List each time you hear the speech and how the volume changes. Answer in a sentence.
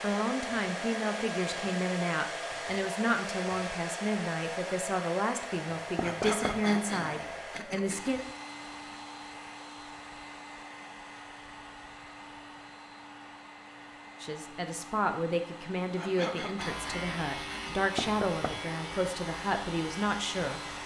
The speech can be heard from 0.0 to 8.2 s, at a steady volume; and from 14.2 to 20.6 s, at a steady volume.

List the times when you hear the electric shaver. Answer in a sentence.
You can hear the electric shaver from 16.6 to 20.8 s.